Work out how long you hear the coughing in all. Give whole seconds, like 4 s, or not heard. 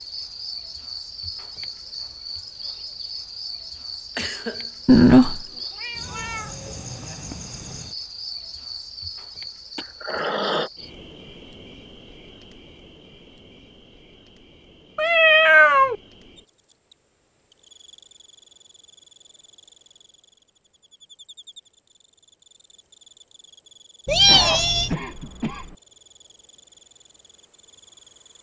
3 s.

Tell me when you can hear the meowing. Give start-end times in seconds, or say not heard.
4.8-6.5, 14.9-15.9, 24.1-24.9.